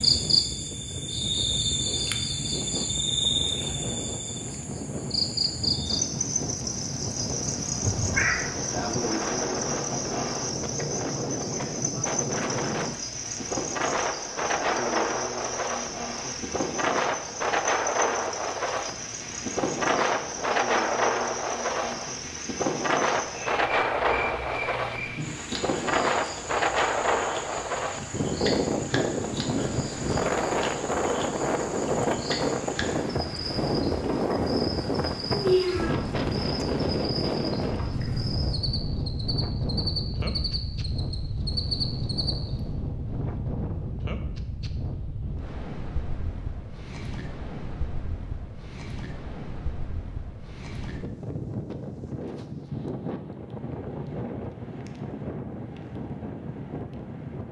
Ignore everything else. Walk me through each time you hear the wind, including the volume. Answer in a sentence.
You can hear the wind from 0.0 to 57.4 s, getting louder then quieter.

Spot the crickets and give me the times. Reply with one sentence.
The crickets can be heard from 0.0 to 42.6 s.